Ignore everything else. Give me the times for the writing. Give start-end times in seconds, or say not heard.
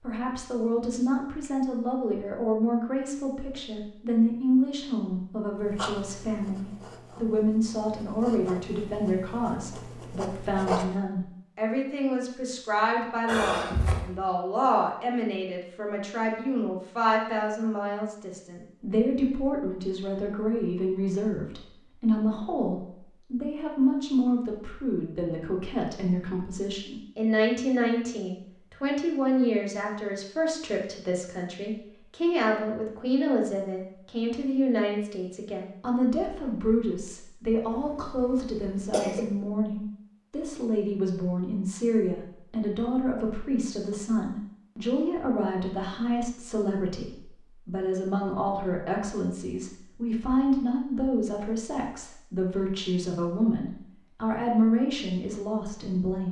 5.5-10.9.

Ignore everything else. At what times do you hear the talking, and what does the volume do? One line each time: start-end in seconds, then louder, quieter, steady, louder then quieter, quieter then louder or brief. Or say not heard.
0.0-56.2 steady.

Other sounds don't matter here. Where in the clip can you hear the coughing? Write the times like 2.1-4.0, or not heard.
13.2-14.1, 37.7-39.3.